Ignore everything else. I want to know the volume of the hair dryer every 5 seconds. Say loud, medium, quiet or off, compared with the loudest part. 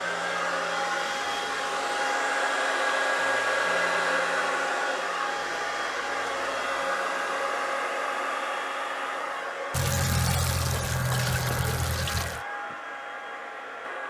loud, loud, medium.